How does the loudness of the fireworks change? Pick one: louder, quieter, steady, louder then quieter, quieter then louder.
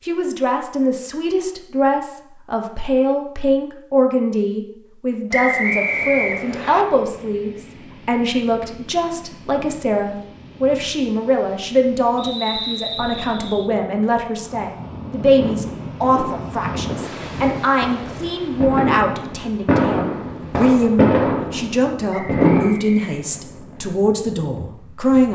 louder.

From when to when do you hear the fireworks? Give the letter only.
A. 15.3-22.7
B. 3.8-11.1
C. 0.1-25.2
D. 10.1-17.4
A.